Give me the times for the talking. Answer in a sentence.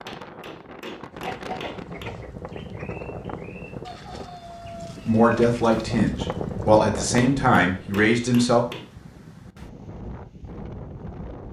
The talking can be heard from 5.0 to 8.7 s.